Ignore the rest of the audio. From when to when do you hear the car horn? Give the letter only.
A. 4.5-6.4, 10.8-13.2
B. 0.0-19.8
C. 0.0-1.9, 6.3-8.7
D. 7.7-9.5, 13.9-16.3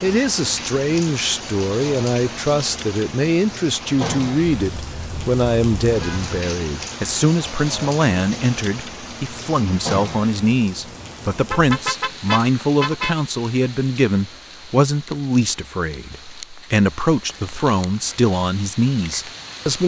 A.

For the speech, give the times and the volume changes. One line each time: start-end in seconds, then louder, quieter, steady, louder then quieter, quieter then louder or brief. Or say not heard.
0.0-19.8 steady.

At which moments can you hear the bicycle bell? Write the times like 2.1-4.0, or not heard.
not heard.